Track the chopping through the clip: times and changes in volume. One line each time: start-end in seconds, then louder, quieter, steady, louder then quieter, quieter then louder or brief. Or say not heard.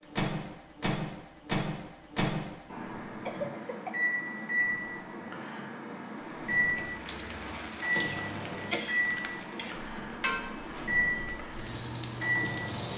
not heard.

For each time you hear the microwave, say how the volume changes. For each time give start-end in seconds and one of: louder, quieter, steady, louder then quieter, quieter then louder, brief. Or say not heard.
0.0-12.9 steady.